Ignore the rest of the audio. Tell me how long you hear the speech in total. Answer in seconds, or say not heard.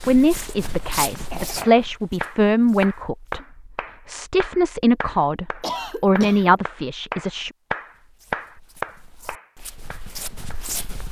7 s.